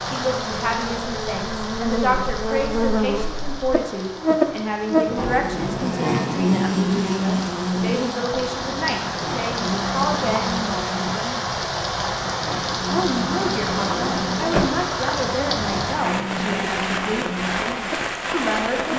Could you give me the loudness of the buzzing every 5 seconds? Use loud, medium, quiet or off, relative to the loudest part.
loud, loud, medium, medium.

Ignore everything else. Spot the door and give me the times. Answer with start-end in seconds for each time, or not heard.
5.2-6.0, 13.6-14.8.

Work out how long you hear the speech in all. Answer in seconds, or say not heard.
16 s.